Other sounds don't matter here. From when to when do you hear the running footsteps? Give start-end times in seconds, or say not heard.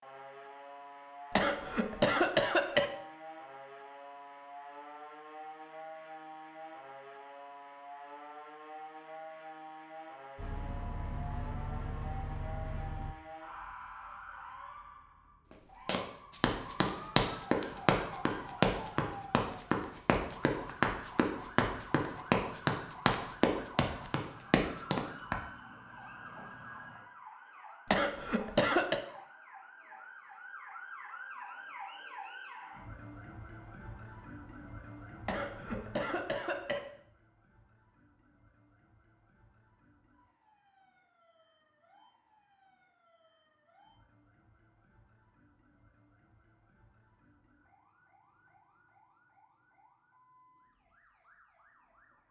15.8-25.4.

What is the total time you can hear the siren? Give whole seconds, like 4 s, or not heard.
52 s.